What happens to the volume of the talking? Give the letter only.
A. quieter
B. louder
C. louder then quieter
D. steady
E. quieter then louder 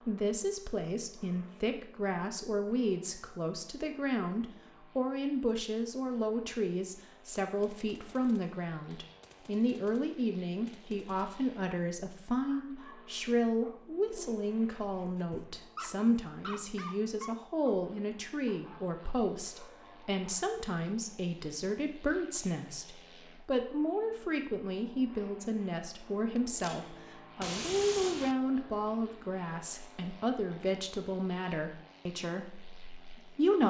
D.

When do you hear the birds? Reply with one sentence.
You can't hear the birds here.